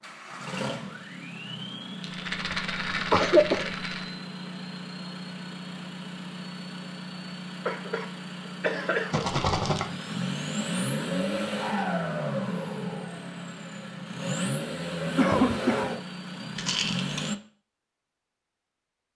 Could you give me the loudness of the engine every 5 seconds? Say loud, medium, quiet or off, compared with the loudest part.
medium, medium, loud, loud.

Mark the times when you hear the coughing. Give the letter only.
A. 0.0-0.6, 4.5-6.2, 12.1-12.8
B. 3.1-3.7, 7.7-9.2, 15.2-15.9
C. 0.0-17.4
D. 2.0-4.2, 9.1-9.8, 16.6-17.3
B.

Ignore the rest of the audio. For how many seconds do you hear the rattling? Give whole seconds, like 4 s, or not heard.
4 s.